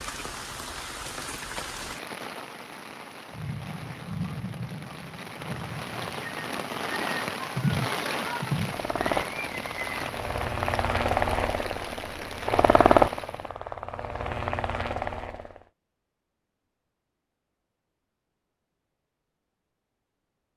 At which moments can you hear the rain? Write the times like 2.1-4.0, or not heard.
0.0-13.6.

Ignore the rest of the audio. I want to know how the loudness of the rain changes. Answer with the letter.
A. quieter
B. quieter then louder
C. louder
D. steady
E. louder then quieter
E.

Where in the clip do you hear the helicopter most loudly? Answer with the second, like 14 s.
13 s.